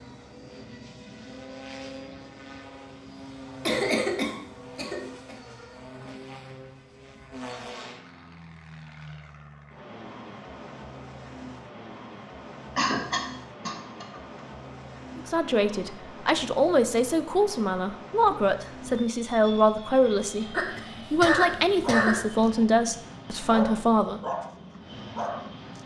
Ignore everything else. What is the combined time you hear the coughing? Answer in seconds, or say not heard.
5 s.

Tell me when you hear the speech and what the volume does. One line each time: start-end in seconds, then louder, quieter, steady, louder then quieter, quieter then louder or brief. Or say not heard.
15.2-24.2 steady.